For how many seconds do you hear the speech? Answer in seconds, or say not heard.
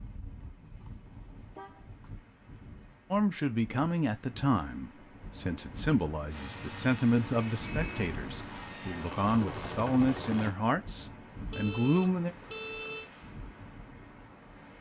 9 s.